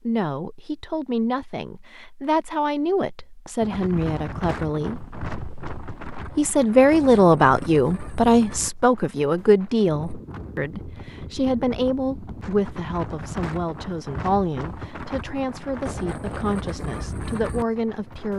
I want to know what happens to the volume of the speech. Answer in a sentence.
The volume of the speech goes up, then down.